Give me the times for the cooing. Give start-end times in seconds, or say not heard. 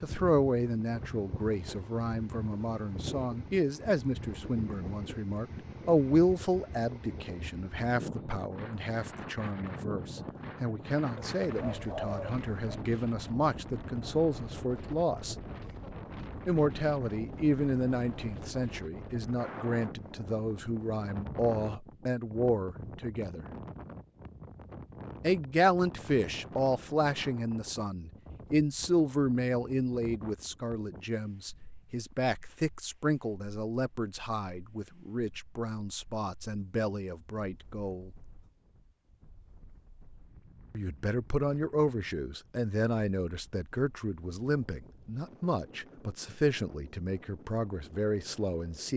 11.2-12.8.